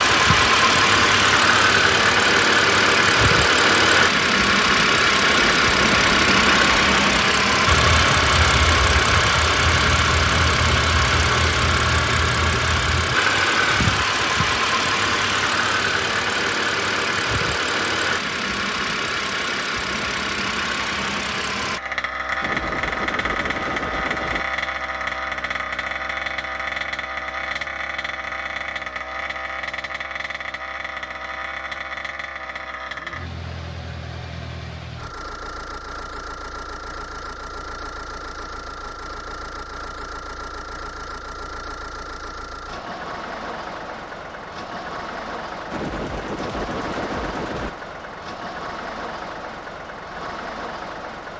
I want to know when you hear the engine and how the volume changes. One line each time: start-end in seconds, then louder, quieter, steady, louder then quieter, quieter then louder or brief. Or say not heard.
0.0-51.3 quieter.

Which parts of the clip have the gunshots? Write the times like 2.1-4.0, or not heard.
5.2-7.2, 22.4-24.4, 45.7-47.7.